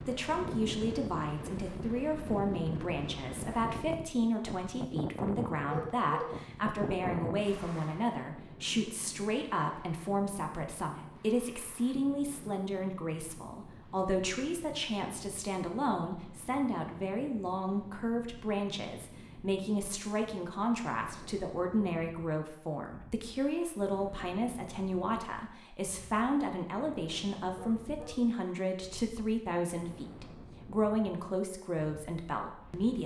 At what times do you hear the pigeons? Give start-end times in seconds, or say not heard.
not heard.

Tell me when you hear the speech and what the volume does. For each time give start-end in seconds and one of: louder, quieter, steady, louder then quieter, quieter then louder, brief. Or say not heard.
0.1-33.0 steady.